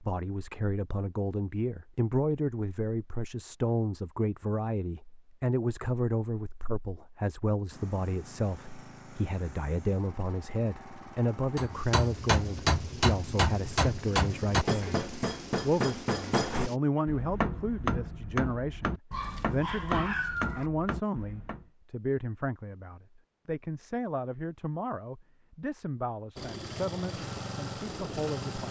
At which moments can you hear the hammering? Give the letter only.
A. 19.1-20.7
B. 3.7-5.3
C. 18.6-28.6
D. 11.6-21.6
D.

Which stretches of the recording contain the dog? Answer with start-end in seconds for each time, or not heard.
19.1-20.7.